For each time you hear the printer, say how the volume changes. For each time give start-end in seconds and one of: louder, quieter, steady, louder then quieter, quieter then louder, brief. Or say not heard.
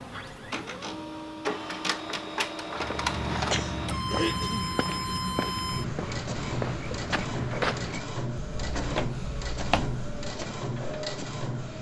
0.0-11.7 steady.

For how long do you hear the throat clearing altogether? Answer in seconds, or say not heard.
2 s.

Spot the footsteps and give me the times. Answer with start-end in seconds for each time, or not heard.
2.8-10.6.